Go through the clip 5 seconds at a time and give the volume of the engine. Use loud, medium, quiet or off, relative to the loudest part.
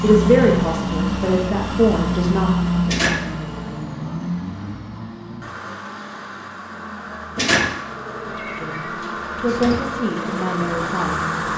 loud, medium, loud.